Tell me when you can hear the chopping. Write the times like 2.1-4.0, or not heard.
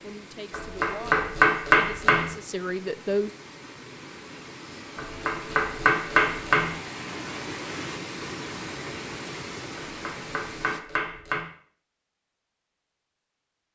0.5-2.3, 5.0-6.8, 9.8-11.4.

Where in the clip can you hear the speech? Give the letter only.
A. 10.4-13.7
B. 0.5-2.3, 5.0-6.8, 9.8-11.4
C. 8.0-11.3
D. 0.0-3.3
D.